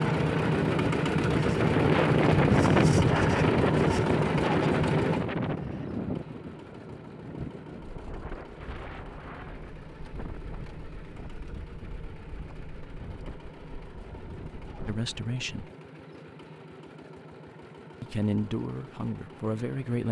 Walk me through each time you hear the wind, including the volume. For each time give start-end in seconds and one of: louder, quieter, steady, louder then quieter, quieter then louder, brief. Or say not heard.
0.0-15.1 quieter.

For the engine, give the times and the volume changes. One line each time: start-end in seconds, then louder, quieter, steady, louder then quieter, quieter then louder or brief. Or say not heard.
0.0-20.0 quieter.